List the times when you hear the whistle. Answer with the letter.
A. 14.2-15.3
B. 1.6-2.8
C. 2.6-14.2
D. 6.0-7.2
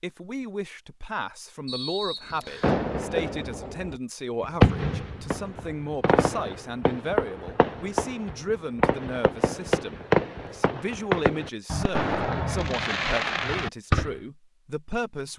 B.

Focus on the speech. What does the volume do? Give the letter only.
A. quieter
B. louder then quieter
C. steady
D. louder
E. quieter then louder
C.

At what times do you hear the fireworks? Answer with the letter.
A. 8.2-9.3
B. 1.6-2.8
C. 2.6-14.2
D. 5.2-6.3
C.